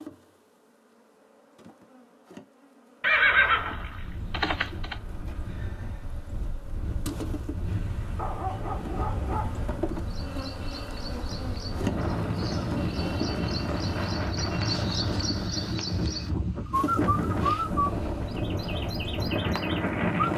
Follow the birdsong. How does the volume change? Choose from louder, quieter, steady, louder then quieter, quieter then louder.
louder then quieter.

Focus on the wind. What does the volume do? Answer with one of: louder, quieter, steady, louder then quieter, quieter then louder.
louder.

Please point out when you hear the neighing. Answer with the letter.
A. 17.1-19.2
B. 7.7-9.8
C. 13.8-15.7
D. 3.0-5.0
D.